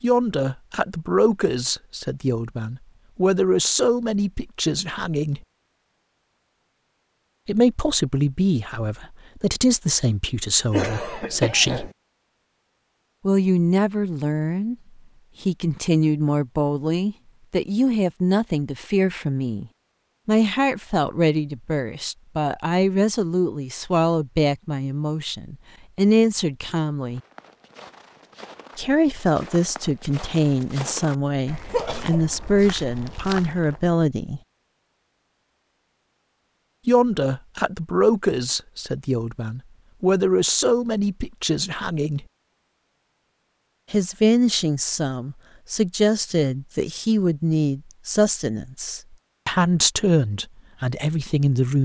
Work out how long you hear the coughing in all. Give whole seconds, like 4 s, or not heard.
2 s.